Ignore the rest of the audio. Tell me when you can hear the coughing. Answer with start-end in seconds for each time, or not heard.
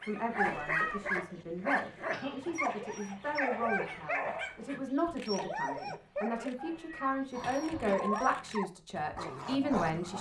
2.1-2.6, 7.3-8.0.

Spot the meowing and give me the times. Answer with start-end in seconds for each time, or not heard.
0.3-1.2, 6.5-8.3.